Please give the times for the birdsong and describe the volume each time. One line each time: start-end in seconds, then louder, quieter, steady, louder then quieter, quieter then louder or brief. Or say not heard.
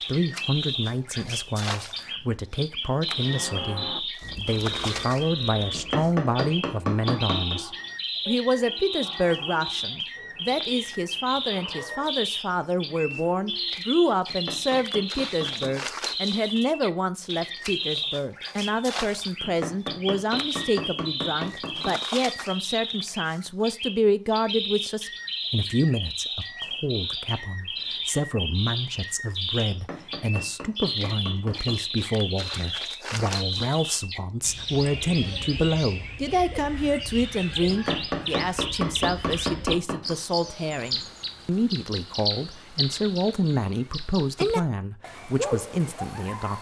0.0-46.5 steady.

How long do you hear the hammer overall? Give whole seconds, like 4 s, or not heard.
11 s.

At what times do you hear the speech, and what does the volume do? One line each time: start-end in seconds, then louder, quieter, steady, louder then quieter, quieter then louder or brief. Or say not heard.
0.1-46.5 steady.